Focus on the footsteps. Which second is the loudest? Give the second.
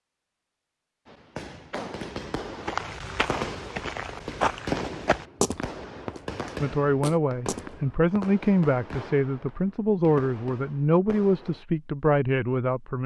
5 s.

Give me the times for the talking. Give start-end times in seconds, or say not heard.
6.6-13.0.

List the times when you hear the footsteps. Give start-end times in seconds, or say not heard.
2.6-8.3.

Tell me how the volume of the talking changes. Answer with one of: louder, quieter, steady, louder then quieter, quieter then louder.
steady.